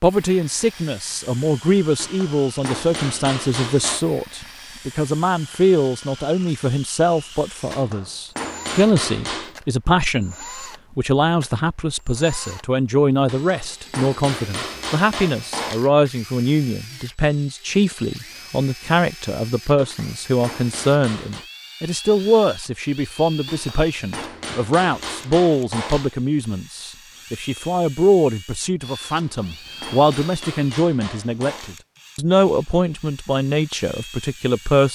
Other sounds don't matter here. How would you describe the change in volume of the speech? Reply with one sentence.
The loudness of the speech stays about the same.